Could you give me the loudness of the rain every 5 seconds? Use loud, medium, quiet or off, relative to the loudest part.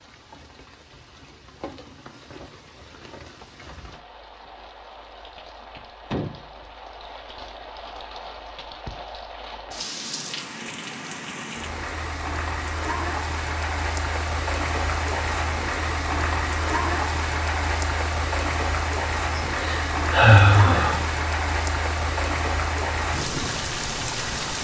quiet, medium, loud, loud, loud.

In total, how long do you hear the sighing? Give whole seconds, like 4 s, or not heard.
2 s.